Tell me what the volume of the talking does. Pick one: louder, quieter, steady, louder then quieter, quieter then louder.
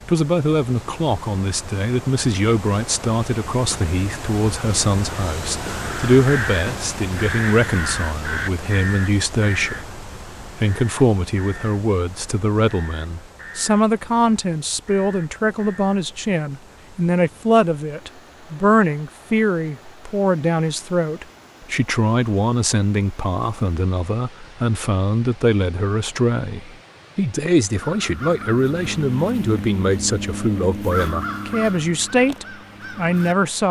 steady.